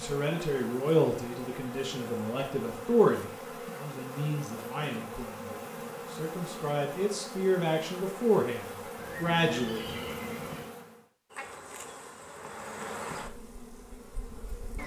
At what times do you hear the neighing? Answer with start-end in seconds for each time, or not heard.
8.9-10.7.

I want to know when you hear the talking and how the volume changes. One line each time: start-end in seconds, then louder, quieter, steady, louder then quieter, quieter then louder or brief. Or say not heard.
0.0-10.1 quieter then louder.